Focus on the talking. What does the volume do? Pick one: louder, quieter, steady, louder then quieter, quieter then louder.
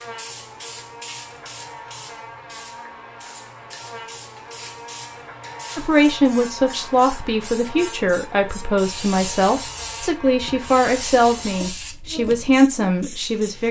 steady.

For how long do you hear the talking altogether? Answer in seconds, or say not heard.
8 s.